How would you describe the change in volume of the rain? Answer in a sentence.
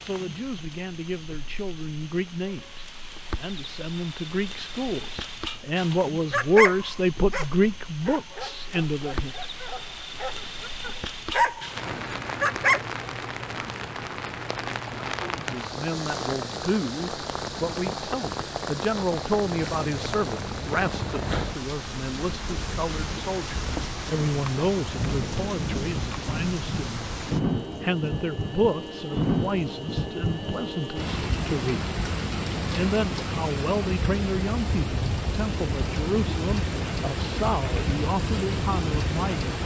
The volume of the rain goes up.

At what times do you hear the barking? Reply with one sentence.
The barking can be heard from 6.3 to 12.8 s.